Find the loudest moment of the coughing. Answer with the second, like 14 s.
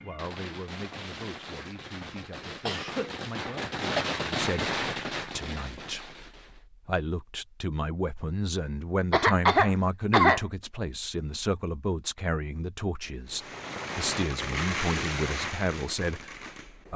10 s.